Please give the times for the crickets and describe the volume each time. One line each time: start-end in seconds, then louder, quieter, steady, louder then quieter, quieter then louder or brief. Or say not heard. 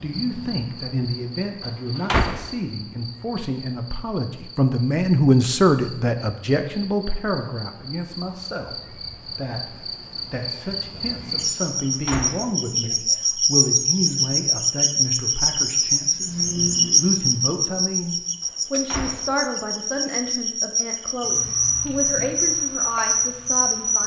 0.0-24.0 louder.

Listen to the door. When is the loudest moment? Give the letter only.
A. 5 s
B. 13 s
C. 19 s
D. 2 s
D.